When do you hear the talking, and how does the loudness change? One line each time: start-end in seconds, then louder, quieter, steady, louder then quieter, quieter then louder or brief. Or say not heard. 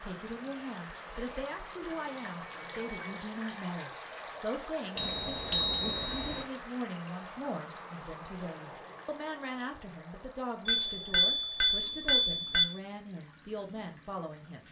0.0-14.6 steady.